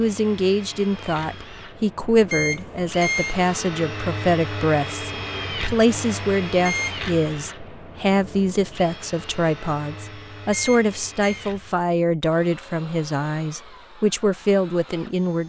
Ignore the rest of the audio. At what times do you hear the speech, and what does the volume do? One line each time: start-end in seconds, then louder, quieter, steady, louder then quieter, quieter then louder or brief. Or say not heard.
0.0-15.4 steady.